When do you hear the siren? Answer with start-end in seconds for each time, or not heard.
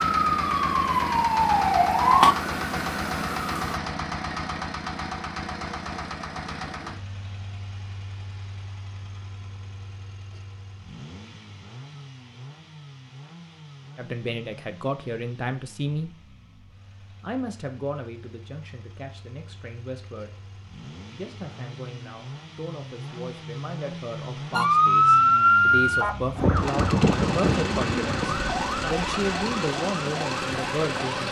0.0-3.8, 24.5-30.9.